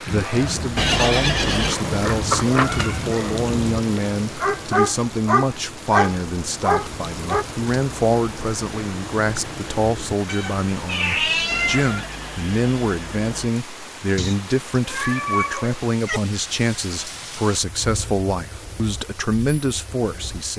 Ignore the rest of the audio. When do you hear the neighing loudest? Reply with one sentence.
The loudest moment of the neighing is at 1 second.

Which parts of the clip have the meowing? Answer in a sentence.
The meowing can be heard from 1.9 to 3.0 s, from 10.2 to 12.1 s and from 14.2 to 16.2 s.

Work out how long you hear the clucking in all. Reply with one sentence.
You can't hear the clucking here.